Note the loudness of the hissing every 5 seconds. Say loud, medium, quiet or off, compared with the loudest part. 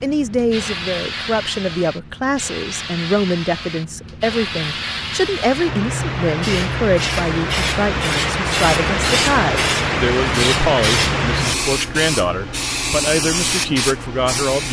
medium, loud, loud.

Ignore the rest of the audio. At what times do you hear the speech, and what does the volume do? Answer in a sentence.
The speech can be heard from 0.0 to 14.6 s, at a steady volume.